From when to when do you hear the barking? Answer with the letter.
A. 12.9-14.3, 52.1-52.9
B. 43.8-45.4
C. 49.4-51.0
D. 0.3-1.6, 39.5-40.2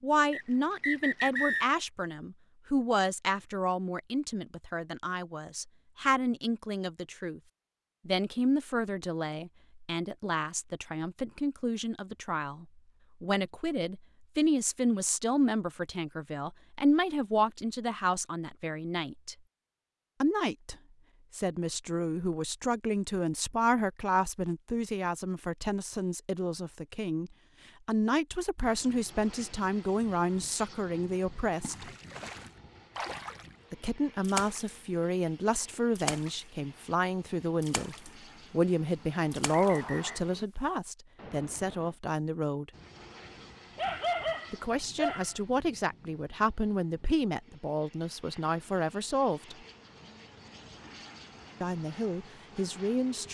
B.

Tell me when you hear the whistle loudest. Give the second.
1 s.